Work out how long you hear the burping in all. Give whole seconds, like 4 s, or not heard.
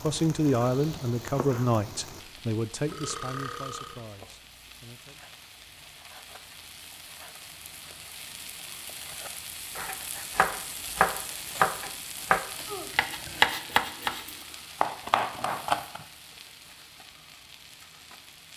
2 s.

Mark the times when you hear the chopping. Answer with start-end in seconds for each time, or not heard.
9.8-16.0.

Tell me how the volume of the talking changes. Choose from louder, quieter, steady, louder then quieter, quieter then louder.
quieter.